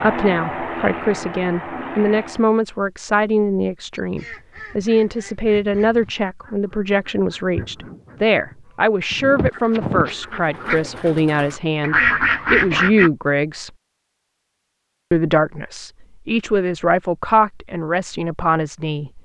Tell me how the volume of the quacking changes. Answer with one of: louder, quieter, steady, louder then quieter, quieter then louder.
louder.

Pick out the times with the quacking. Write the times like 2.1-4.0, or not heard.
4.0-13.1.